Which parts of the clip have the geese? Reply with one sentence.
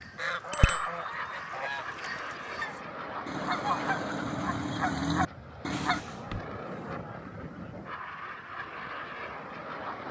The geese can be heard from 0.0 to 6.0 s.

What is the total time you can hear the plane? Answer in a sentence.
The plane can be heard for 10 seconds in total.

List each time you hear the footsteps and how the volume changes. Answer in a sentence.
The footsteps can't be heard in this clip.